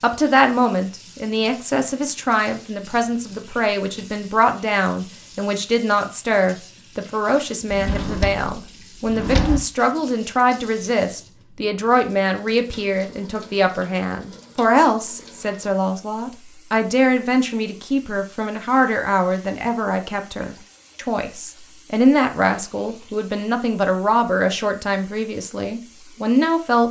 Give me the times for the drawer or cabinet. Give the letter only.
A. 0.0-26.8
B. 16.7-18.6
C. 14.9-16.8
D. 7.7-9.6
D.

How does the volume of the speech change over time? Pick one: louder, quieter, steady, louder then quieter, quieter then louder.
steady.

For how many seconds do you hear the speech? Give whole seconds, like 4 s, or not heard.
27 s.